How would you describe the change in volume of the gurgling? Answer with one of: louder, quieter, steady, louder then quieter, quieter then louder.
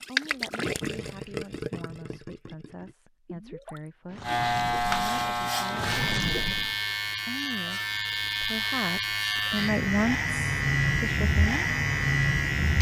quieter then louder.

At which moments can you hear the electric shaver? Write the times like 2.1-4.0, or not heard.
4.2-12.7.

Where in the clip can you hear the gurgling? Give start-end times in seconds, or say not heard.
0.0-6.8.